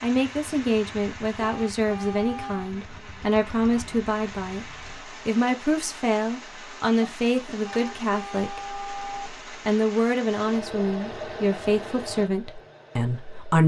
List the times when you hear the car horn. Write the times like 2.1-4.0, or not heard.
1.4-2.7, 7.6-9.3.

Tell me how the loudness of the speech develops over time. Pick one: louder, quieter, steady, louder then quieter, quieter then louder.
steady.